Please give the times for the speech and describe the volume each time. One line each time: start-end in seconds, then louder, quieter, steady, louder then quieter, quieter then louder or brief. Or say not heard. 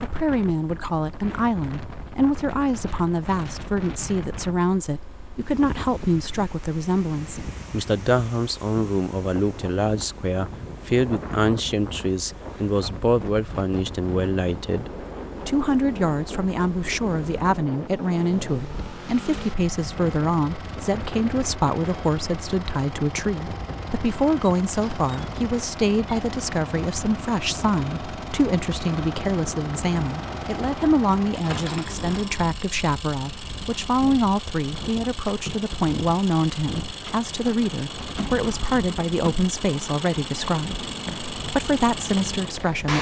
0.0-42.9 steady.